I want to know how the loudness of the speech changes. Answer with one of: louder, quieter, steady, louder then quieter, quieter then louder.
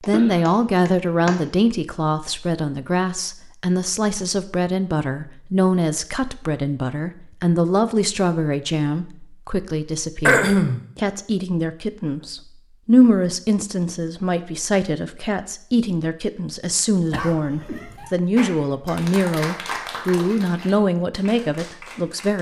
steady.